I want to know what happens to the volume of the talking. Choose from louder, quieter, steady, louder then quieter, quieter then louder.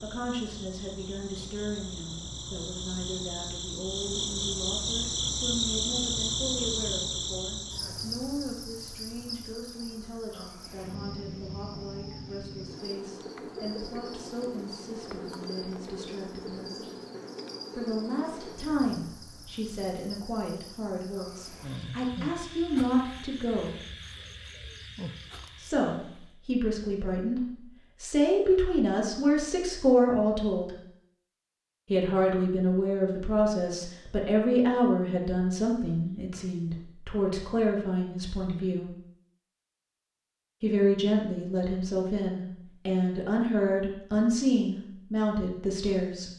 louder.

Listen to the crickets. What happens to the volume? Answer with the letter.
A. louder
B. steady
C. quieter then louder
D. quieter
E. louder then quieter
D.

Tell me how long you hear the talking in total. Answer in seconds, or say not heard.
41 s.